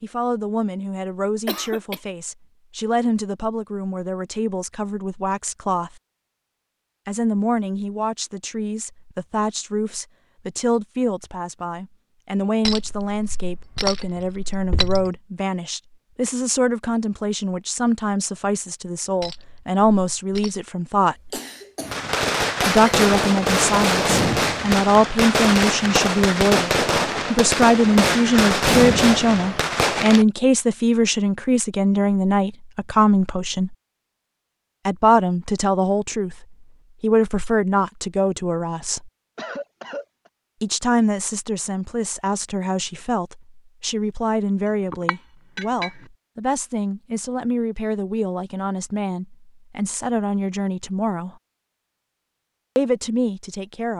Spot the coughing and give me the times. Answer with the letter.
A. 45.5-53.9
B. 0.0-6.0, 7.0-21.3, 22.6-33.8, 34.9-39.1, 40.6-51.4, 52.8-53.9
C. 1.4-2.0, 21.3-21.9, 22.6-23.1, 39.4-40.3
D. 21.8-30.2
C.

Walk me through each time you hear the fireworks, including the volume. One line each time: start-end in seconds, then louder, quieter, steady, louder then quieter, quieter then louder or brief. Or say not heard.
21.8-30.2 steady.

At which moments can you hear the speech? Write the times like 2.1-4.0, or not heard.
0.0-6.0, 7.0-21.3, 22.6-33.8, 34.9-39.1, 40.6-51.4, 52.8-53.9.